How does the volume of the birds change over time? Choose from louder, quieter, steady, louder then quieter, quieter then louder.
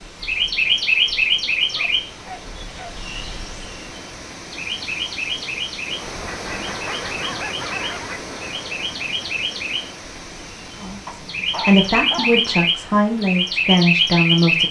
quieter then louder.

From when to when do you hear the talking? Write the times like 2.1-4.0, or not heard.
10.8-14.6.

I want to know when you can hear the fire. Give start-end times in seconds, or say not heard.
not heard.